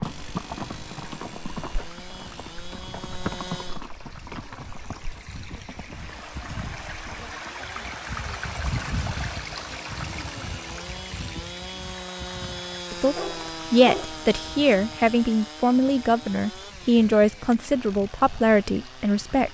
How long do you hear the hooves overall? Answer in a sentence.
You can hear the hooves for 7 seconds altogether.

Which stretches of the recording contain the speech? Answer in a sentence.
You can hear the speech from 12.9 to 19.4 s.